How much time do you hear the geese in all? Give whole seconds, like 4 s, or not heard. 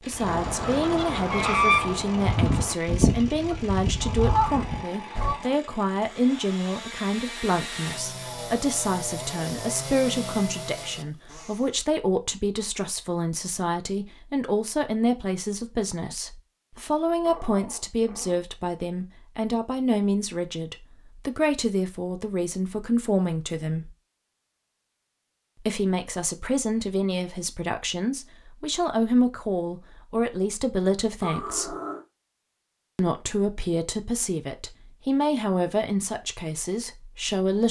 5 s.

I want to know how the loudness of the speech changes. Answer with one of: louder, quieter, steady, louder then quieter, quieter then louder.
steady.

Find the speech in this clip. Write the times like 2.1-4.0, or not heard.
0.1-23.9, 25.6-31.8, 33.0-37.6.